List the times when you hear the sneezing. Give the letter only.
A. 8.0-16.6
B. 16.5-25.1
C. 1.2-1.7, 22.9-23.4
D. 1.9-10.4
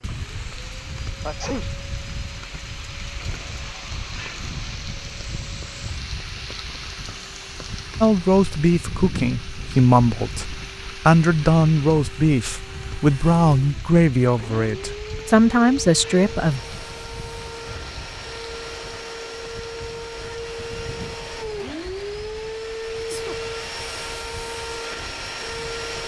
C.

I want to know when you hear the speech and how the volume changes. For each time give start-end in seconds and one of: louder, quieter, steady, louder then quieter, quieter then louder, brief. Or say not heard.
8.0-16.6 steady.